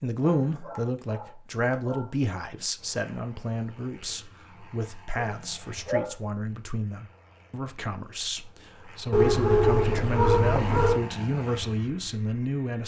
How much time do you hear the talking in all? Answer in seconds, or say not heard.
13 s.